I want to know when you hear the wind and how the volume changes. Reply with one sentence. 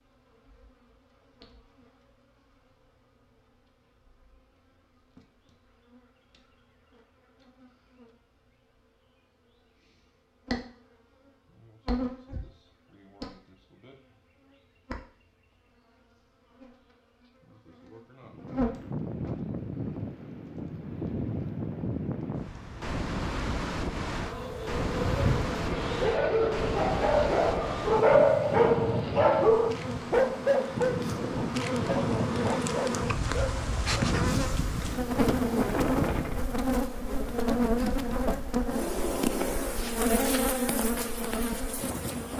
You can hear the wind from 18.2 to 42.3 s, getting quieter.